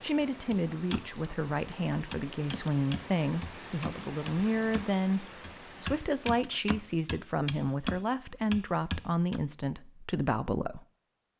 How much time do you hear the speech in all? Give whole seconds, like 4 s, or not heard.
11 s.